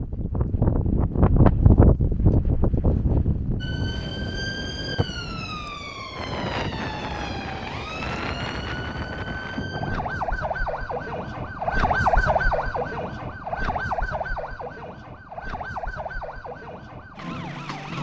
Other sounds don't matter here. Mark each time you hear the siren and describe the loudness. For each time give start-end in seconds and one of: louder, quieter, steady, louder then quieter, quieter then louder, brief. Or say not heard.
3.6-17.9 louder then quieter.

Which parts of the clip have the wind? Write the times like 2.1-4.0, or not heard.
0.0-10.4.